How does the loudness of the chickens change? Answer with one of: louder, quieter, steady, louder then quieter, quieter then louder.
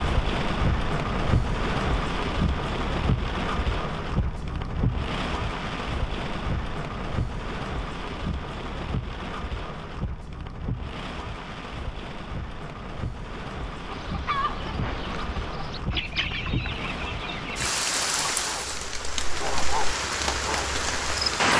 quieter then louder.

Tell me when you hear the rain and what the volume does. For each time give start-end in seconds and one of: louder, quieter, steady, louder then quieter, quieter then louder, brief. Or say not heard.
0.0-21.5 quieter then louder.